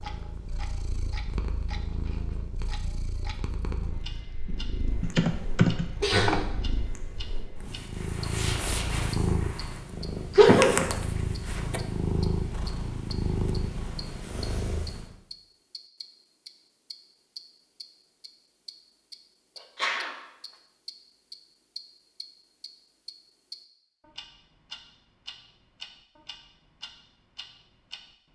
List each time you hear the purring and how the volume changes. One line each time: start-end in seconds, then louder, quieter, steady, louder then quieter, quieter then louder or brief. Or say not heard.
0.0-15.2 louder.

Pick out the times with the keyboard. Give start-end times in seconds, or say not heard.
5.0-6.5.